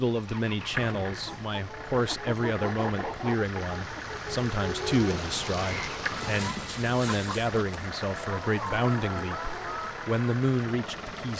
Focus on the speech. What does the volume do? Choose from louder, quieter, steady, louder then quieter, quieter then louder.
steady.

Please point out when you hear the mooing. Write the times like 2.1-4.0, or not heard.
not heard.